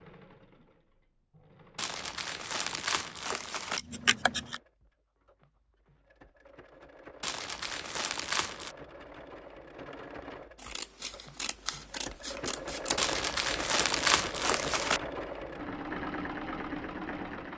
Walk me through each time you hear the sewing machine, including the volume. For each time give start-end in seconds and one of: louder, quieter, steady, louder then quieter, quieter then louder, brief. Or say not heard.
0.0-17.5 louder.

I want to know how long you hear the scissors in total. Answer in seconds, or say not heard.
3 s.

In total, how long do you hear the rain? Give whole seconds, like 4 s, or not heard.
not heard.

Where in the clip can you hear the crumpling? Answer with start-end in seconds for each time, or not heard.
1.8-3.8, 7.2-8.8, 12.9-15.0.